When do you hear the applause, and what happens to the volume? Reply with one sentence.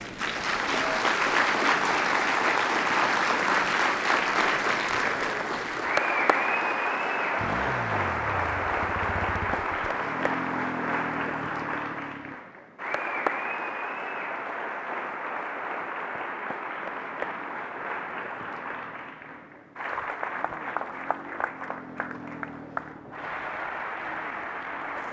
You can hear the applause from 0.0 to 25.0 s, getting quieter.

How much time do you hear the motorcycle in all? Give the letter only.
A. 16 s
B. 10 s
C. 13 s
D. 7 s
C.